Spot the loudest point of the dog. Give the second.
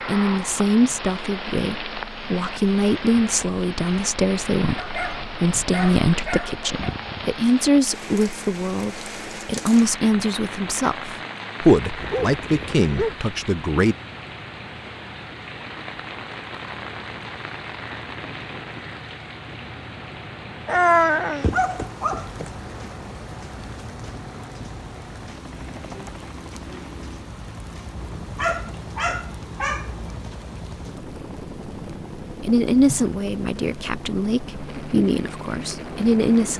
21 s.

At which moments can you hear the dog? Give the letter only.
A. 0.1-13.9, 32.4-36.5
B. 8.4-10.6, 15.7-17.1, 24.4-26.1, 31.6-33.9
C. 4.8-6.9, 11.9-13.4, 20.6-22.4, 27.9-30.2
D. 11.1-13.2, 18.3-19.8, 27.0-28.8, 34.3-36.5
C.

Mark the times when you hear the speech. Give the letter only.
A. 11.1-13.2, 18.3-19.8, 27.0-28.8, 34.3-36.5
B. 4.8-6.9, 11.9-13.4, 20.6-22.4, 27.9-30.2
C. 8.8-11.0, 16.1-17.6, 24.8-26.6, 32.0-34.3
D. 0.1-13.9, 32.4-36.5
D.